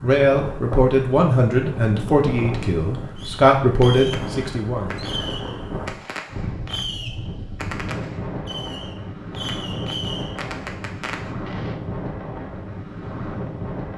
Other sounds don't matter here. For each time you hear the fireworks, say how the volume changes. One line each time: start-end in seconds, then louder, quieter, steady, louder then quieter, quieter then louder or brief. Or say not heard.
3.1-11.8 steady.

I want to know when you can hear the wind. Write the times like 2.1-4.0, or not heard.
0.0-13.9.